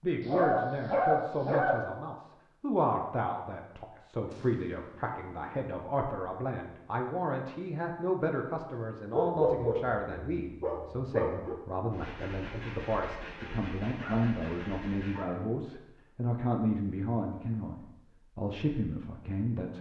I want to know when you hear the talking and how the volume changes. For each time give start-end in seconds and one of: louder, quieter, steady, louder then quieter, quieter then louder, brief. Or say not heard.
0.0-19.7 steady.